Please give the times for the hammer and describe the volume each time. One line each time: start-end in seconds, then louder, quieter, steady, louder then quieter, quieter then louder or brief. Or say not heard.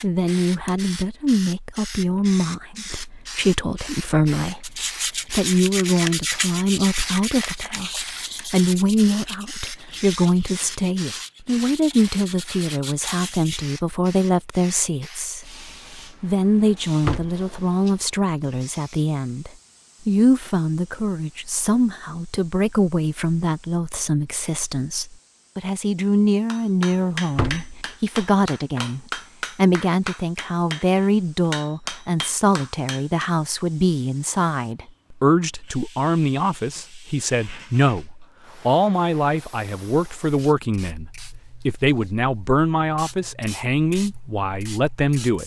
26.5-33.3 steady.